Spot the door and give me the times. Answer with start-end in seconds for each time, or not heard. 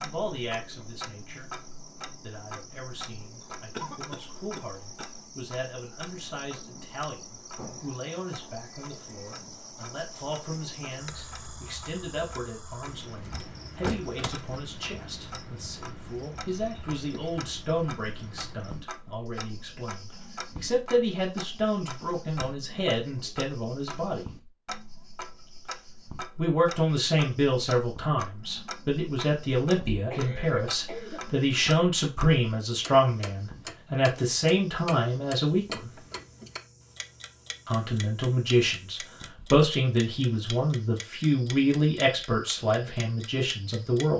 13.4-14.4.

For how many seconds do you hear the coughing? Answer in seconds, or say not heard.
4 s.